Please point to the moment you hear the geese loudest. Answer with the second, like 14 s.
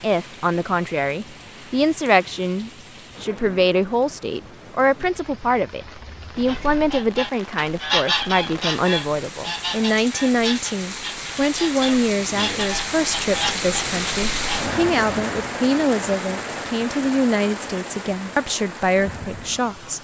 8 s.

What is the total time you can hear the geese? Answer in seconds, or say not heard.
8 s.